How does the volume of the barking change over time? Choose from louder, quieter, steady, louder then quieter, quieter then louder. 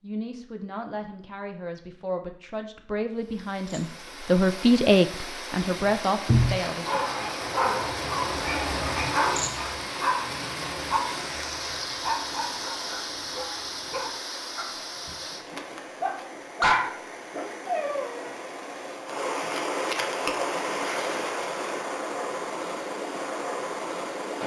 quieter then louder.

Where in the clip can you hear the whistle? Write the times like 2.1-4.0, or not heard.
not heard.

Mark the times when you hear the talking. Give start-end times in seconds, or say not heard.
0.0-7.0.